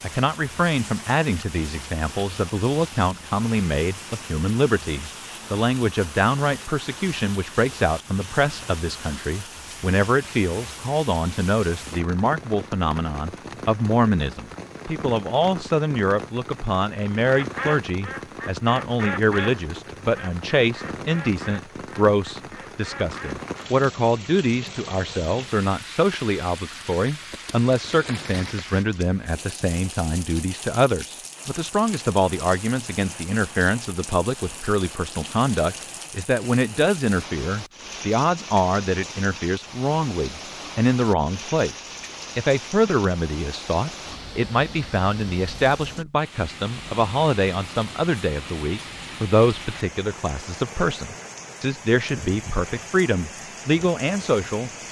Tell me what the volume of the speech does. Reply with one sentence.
The volume of the speech stays about the same.